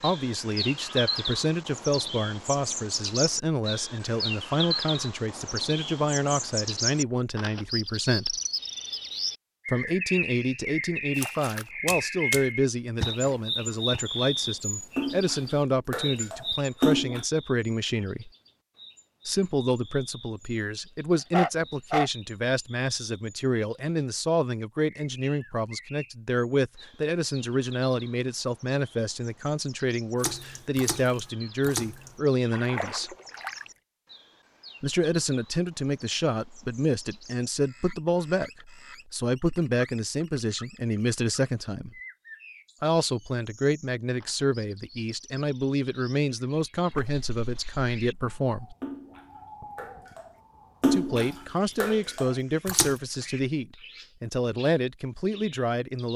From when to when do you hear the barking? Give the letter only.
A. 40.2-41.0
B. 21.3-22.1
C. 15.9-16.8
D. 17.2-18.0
B.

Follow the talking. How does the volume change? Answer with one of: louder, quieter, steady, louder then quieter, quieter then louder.
steady.